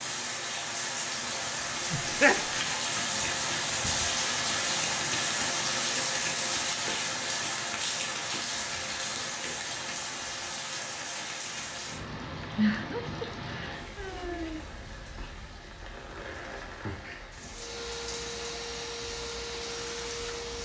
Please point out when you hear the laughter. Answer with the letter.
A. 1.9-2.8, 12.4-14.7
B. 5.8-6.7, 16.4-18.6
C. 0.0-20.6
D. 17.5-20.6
A.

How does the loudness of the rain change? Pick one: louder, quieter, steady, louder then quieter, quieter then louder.
quieter.